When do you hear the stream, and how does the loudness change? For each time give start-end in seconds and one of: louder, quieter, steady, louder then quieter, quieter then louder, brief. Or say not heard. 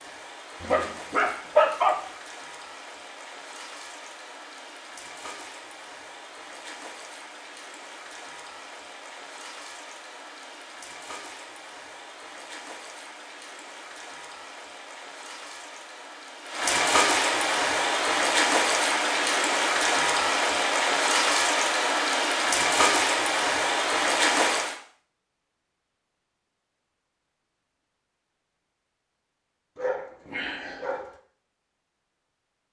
0.0-24.8 louder.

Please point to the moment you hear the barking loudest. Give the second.
2 s.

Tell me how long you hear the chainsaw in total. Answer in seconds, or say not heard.
not heard.